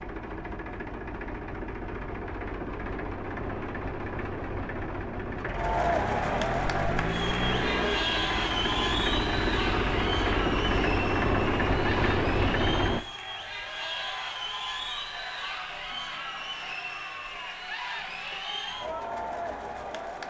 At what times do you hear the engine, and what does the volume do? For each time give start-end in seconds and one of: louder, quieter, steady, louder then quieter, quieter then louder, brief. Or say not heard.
0.0-13.0 louder.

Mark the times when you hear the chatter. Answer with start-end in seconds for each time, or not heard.
5.5-20.2.